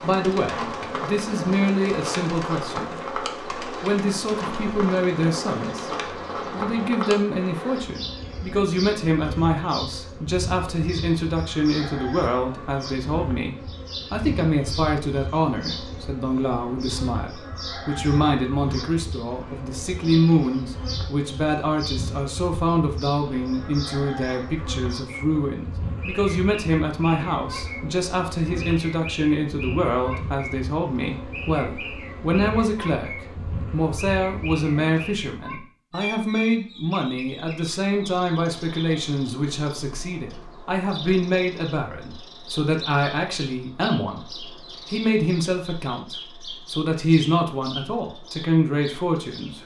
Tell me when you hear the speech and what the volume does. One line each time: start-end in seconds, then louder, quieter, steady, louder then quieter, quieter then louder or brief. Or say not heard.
0.0-49.6 steady.